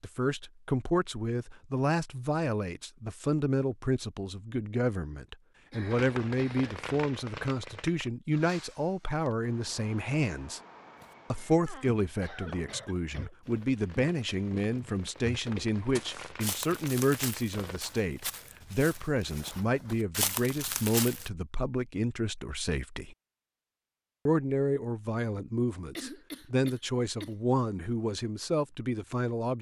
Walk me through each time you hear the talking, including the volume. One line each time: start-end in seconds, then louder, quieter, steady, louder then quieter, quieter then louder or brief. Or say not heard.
0.0-10.6 steady
11.3-23.1 steady
24.2-29.5 steady.